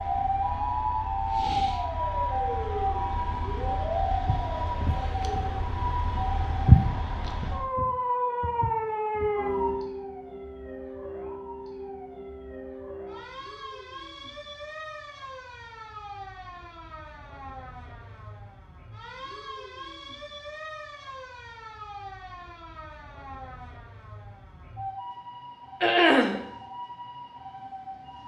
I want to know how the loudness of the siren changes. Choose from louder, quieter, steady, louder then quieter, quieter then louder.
quieter.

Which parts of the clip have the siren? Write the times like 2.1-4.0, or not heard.
0.0-28.2.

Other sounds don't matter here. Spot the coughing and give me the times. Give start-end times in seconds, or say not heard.
25.8-26.4.